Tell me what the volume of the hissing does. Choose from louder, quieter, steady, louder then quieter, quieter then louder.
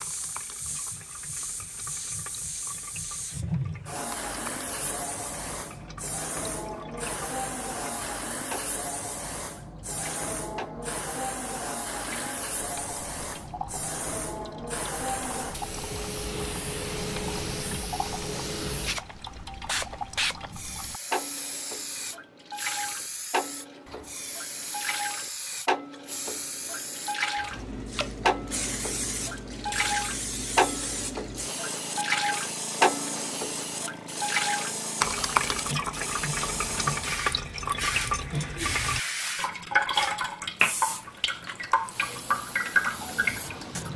steady.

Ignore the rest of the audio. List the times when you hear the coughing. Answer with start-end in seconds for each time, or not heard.
not heard.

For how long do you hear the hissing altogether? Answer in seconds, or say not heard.
44 s.